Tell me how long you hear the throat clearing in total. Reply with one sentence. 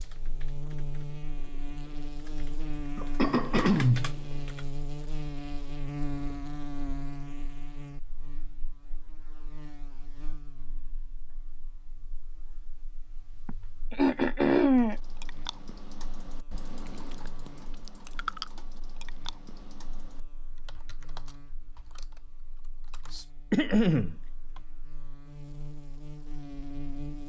You can hear the throat clearing for 3 seconds altogether.